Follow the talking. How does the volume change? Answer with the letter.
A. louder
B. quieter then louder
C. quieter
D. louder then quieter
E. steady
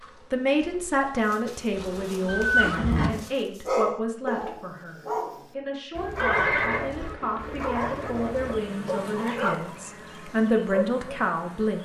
B.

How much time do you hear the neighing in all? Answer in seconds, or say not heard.
3 s.